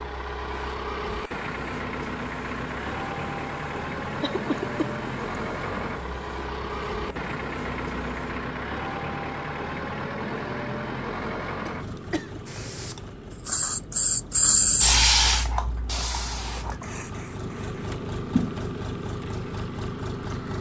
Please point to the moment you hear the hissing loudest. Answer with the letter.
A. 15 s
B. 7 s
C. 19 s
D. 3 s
A.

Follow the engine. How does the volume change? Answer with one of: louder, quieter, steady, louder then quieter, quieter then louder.
quieter then louder.